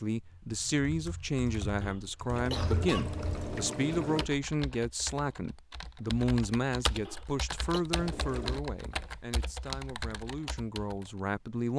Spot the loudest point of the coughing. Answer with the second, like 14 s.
3 s.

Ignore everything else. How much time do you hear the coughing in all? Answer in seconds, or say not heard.
2 s.